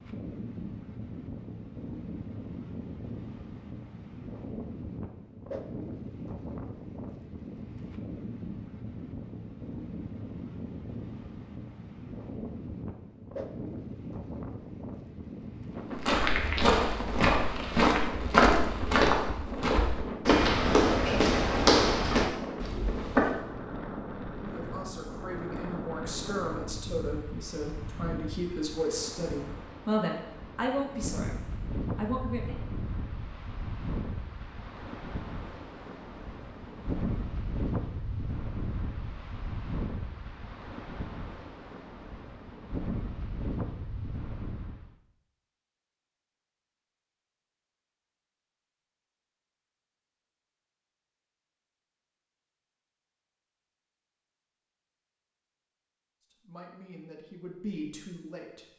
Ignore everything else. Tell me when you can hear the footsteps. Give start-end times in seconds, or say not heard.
15.9-23.4.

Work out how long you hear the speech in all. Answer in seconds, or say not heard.
11 s.